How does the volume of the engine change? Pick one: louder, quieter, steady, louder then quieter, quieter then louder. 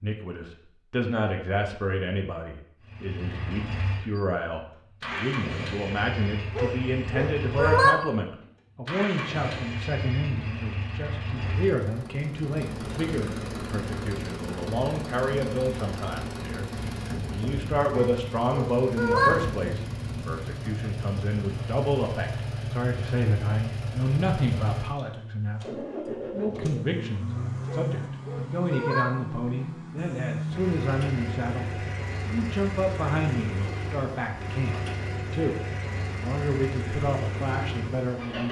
steady.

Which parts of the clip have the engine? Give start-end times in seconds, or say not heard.
2.8-38.4.